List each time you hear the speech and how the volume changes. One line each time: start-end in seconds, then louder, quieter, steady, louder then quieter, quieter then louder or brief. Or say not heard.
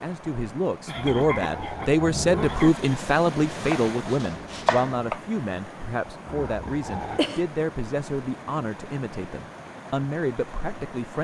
0.0-11.1 quieter.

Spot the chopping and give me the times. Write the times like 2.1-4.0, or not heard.
3.5-5.2.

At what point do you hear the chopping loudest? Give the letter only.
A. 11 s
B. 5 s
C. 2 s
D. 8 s
B.